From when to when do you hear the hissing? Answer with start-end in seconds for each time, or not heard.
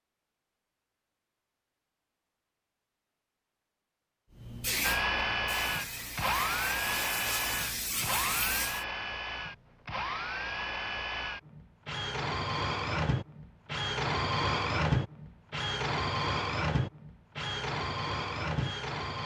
4.3-8.8.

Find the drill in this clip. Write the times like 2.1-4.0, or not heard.
4.8-19.2.